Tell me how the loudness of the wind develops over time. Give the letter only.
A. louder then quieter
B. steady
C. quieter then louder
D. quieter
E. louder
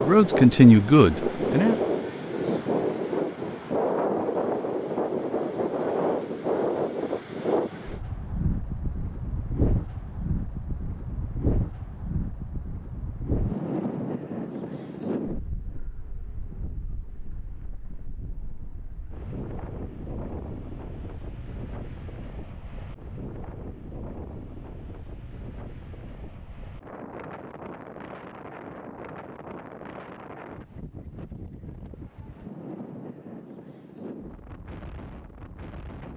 D.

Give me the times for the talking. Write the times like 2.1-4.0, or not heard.
0.0-1.8.